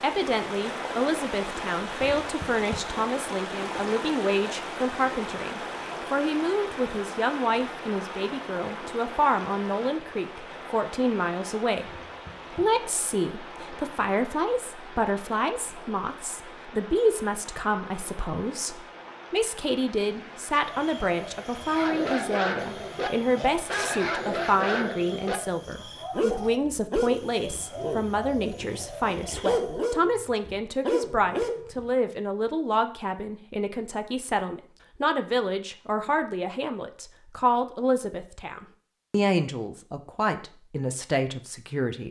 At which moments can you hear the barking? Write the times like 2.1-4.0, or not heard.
21.6-31.9.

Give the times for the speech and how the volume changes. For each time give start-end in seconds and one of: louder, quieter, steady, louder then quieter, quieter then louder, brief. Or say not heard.
0.0-42.0 steady.